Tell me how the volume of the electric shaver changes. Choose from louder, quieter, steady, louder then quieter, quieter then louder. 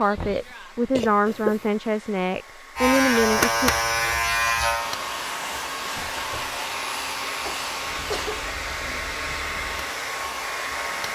quieter.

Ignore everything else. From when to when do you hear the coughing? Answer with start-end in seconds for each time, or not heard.
0.9-1.6, 7.5-8.4.